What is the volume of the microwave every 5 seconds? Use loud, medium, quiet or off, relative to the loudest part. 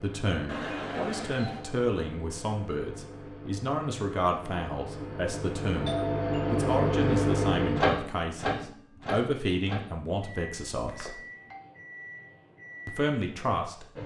quiet, loud, quiet.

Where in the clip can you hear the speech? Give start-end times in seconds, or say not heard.
0.0-11.2, 12.8-14.0.